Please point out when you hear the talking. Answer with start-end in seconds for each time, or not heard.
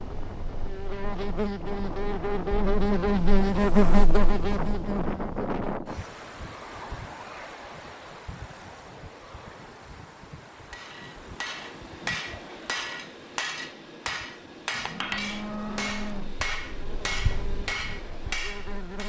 not heard.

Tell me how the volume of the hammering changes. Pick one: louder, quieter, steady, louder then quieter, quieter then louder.
steady.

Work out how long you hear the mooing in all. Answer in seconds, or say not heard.
2 s.